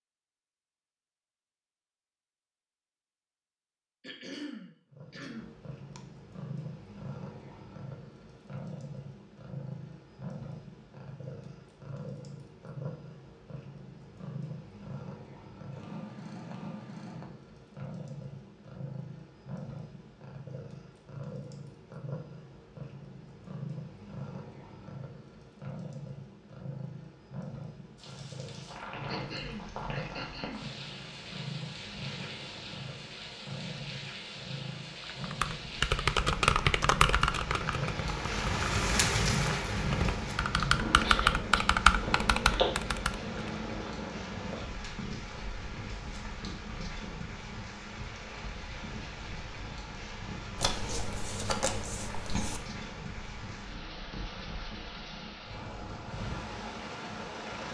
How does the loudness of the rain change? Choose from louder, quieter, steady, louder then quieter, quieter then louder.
louder then quieter.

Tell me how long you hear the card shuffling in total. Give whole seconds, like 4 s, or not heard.
2 s.